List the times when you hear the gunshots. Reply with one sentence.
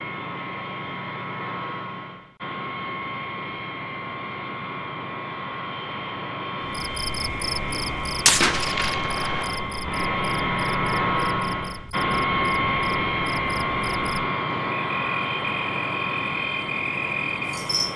The gunshots can be heard from 7.7 to 9.6 s.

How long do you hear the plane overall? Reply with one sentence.
The plane can be heard for 18 seconds in total.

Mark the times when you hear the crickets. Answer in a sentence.
You can hear the crickets from 6.6 to 17.9 s.